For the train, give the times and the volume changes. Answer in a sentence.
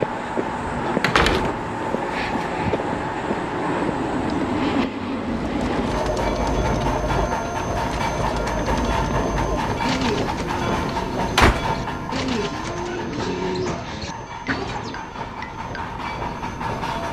The train can be heard from 0.0 to 17.0 s, getting quieter.